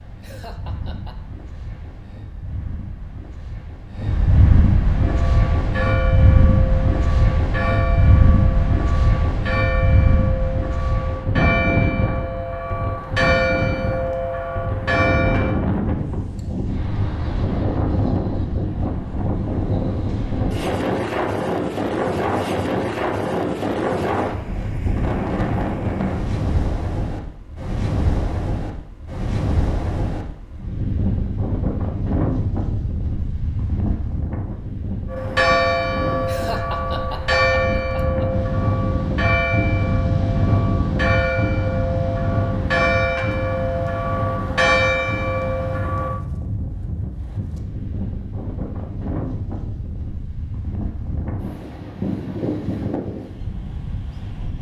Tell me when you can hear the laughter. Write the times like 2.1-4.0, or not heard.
0.2-1.1, 36.2-38.2.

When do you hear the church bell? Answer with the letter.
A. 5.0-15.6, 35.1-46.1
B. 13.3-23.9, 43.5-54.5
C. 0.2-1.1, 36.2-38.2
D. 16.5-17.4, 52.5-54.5
A.